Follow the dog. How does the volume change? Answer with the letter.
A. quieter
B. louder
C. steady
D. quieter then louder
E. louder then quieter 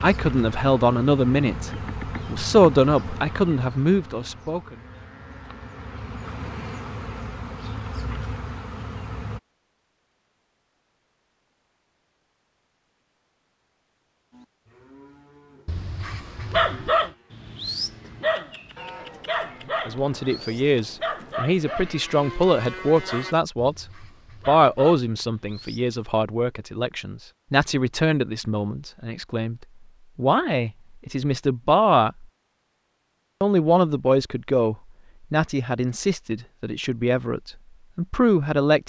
A.